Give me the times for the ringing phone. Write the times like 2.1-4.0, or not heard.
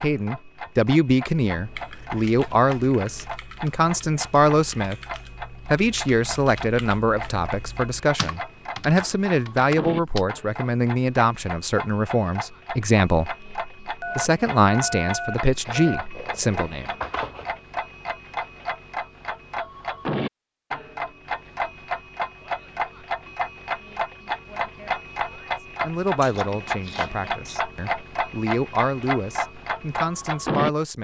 14.0-16.0.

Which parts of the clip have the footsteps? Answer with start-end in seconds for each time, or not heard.
not heard.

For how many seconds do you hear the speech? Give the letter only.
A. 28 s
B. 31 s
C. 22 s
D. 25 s
C.